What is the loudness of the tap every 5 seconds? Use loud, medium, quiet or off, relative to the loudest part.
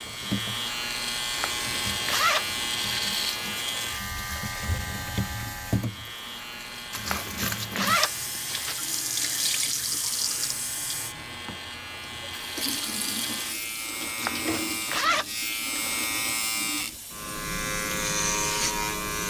medium, loud, loud, medium.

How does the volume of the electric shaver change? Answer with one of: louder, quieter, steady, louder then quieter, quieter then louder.
quieter then louder.